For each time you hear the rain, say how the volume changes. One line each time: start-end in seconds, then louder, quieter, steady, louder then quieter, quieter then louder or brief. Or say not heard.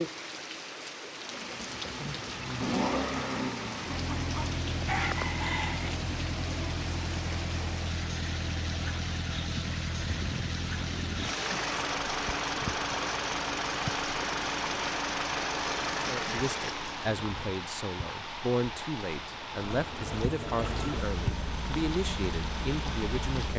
0.0-23.5 steady.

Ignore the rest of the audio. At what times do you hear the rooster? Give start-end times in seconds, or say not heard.
3.9-5.9.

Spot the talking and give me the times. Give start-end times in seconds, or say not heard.
16.1-23.5.